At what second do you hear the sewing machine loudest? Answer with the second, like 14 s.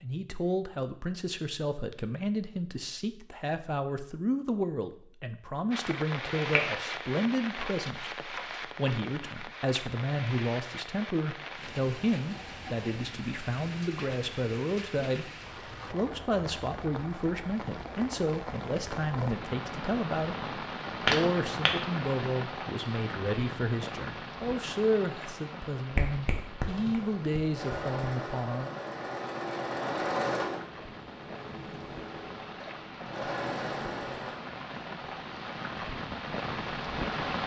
30 s.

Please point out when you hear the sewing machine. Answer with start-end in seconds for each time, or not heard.
26.6-34.5.